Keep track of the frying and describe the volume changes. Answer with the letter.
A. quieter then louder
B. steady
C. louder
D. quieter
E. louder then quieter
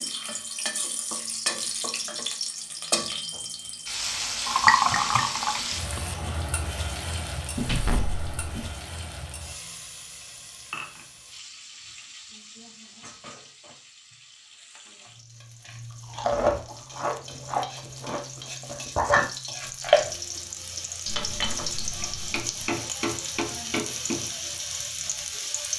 A.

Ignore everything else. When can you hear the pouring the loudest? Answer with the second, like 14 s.
5 s.